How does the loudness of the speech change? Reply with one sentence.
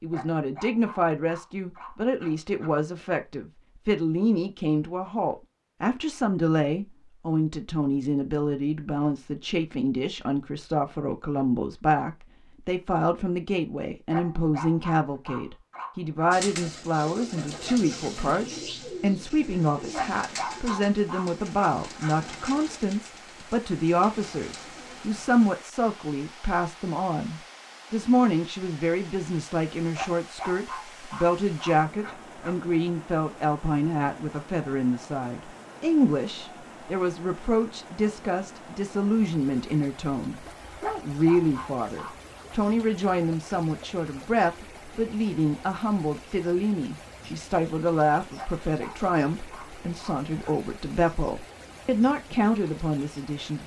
The loudness of the speech stays about the same.